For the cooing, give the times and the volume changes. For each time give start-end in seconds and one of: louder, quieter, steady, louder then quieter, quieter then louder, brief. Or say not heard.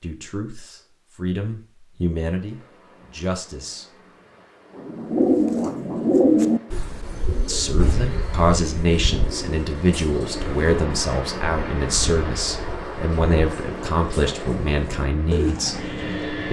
4.8-16.2 quieter then louder.